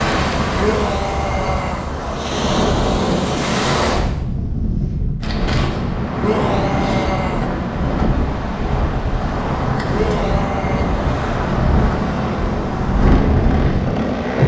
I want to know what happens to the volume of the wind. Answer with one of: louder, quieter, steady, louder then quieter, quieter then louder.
steady.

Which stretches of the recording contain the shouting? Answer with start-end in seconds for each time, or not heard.
0.6-1.9, 6.2-7.5, 9.9-10.9.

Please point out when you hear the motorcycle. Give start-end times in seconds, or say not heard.
12.0-14.4.